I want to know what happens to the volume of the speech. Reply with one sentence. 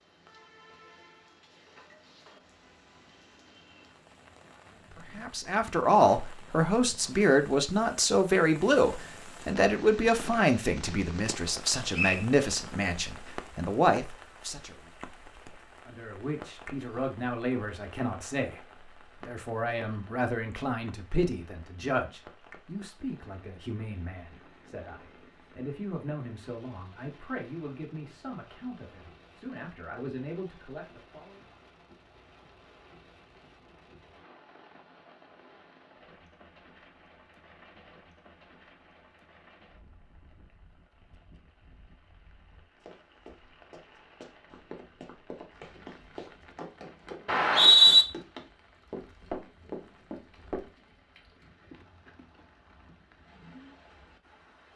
The volume of the speech goes down.